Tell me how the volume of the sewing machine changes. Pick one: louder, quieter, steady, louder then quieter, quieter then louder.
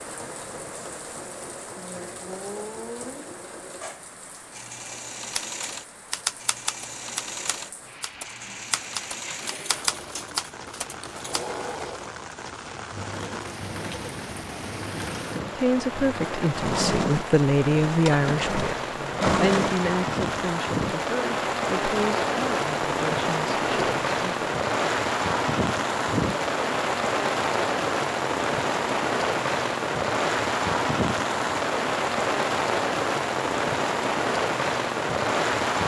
louder.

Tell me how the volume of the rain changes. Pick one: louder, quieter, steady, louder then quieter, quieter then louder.
louder.